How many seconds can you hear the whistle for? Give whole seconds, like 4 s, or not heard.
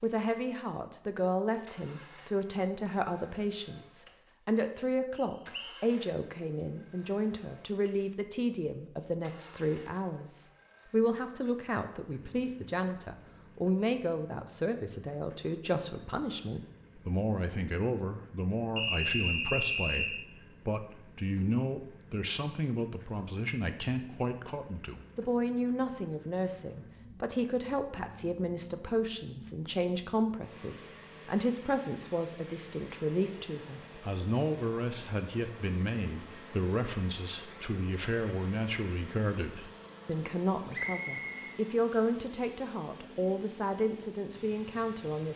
3 s.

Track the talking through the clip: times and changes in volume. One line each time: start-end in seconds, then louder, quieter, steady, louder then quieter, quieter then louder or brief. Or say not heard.
0.0-45.3 steady.